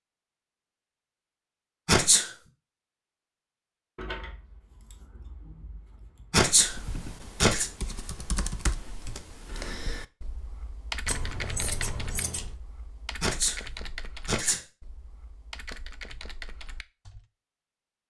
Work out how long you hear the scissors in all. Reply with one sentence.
The scissors can be heard for 4 seconds in total.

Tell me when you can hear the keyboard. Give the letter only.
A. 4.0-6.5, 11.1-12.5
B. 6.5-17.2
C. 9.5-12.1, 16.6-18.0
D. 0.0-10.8
B.